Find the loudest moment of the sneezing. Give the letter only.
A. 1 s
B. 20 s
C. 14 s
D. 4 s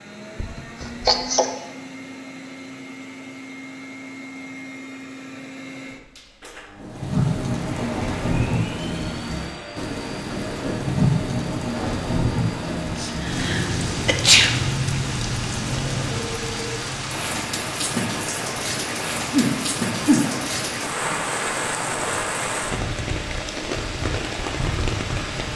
C.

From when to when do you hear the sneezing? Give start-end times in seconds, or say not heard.
0.4-1.4, 13.0-14.5, 19.2-20.2.